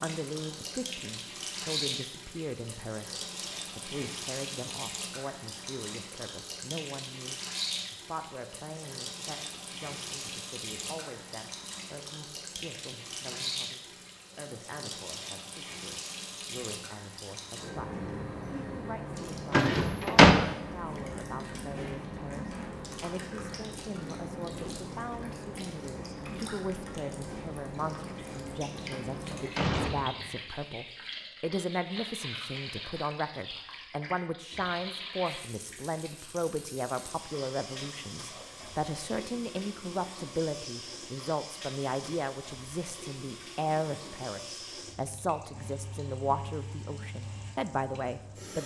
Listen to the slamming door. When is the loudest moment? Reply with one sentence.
The loudest moment of the slamming door is at 20 seconds.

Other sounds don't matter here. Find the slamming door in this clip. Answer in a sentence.
You can hear the slamming door from 19.5 to 20.4 s and from 28.9 to 30.4 s.